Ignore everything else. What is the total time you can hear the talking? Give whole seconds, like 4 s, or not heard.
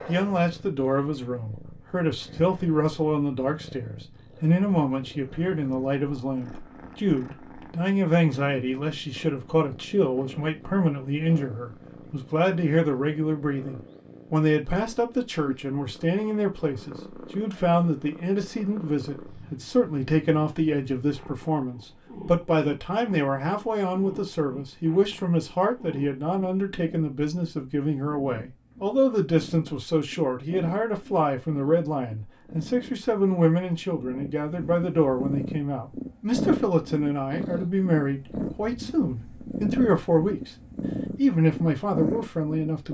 42 s.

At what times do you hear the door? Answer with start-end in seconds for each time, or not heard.
not heard.